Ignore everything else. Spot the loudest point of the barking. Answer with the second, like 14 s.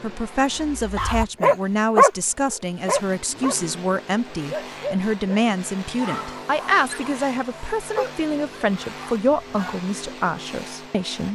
2 s.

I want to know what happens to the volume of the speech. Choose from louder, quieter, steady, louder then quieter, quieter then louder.
steady.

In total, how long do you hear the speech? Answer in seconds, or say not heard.
11 s.